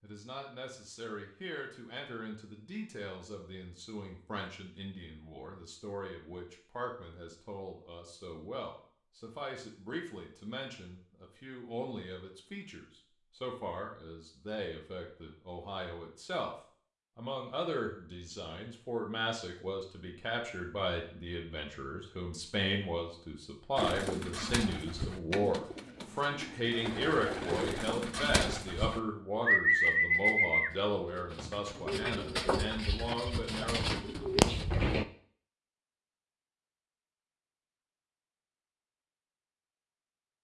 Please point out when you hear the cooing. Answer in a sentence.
The cooing can be heard from 23.8 to 35.0 s.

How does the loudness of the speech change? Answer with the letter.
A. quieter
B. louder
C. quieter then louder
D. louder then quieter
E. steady
B.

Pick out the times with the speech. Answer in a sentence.
The speech can be heard from 0.0 to 16.6 s and from 17.1 to 33.9 s.